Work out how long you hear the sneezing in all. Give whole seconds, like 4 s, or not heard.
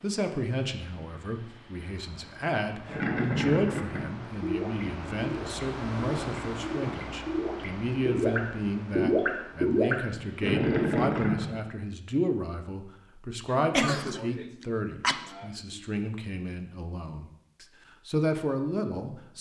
2 s.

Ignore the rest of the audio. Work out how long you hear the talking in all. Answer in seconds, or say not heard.
19 s.